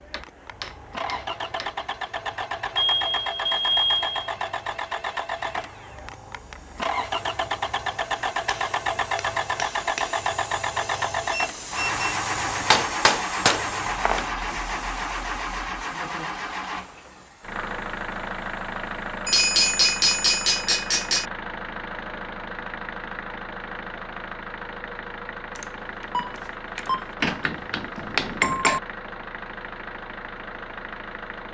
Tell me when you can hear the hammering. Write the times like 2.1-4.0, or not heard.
0.1-1.8, 8.4-10.3, 12.7-14.2, 19.2-21.2, 27.2-28.8.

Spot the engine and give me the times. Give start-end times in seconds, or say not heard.
0.0-31.4.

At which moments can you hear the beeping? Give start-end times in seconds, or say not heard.
2.8-4.3, 11.3-12.1, 25.6-27.1.